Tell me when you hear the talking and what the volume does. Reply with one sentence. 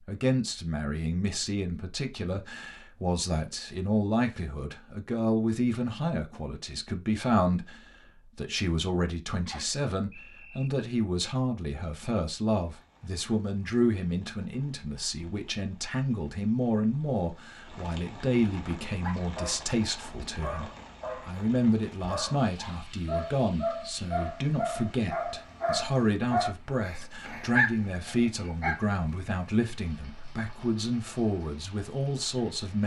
You can hear the talking from 0.1 to 32.8 s, at a steady volume.